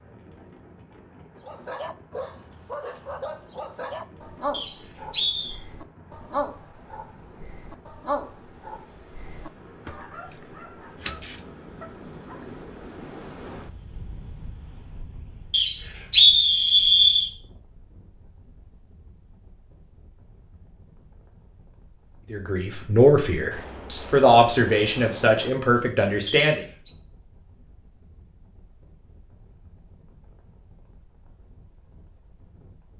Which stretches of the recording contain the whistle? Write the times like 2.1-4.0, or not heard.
4.5-5.5, 15.5-17.3, 26.4-26.9.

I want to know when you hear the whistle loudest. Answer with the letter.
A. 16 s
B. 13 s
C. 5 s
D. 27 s
A.